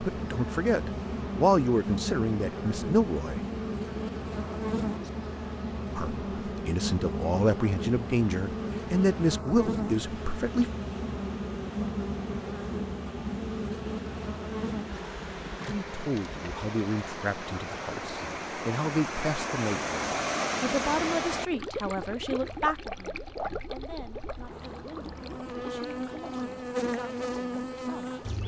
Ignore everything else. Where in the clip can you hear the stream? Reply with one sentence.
The stream can be heard from 0.0 to 28.4 s.